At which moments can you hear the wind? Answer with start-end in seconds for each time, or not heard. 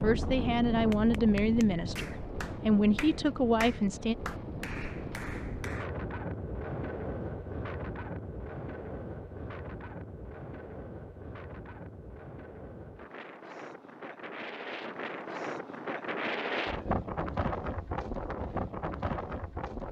0.0-19.8.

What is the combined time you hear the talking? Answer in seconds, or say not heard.
4 s.